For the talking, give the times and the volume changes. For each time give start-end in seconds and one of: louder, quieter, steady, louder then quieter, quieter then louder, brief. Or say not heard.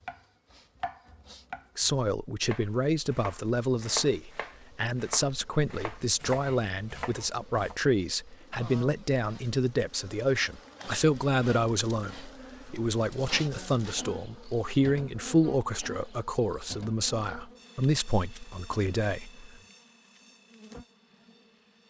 1.8-19.5 steady.